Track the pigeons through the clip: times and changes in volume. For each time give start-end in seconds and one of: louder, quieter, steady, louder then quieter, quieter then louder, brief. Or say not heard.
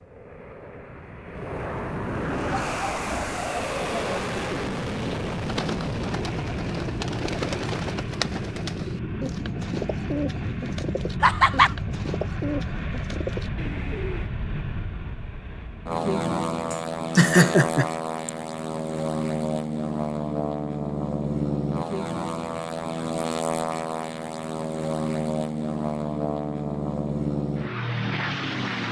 2.3-14.3 steady.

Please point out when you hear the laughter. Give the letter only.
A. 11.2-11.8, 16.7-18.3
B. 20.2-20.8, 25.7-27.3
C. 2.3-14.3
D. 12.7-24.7
A.